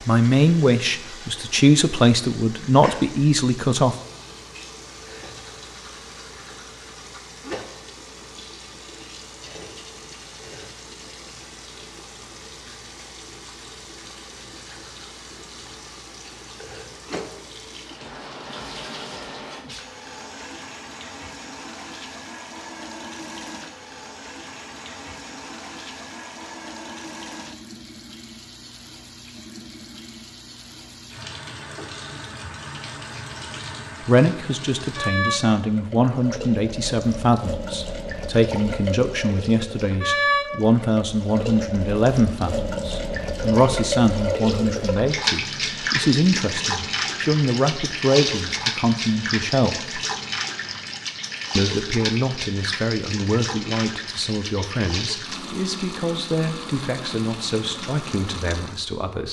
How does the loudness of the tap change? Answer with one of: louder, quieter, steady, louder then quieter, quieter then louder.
louder.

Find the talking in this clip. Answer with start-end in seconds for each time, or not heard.
0.1-4.0, 34.0-50.0, 51.5-59.2.